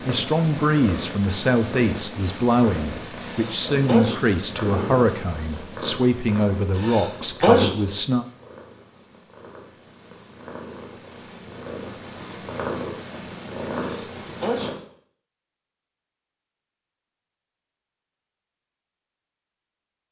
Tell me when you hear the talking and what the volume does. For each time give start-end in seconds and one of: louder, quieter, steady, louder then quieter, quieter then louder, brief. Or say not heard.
0.1-8.2 steady.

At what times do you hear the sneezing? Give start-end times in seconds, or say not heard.
3.2-4.2, 6.8-7.8, 13.8-14.7.